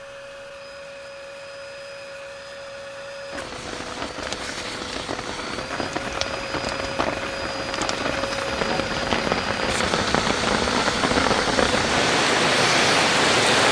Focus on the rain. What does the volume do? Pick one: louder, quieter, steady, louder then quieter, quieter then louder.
louder.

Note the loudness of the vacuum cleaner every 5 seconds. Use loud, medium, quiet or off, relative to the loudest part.
medium, medium, loud.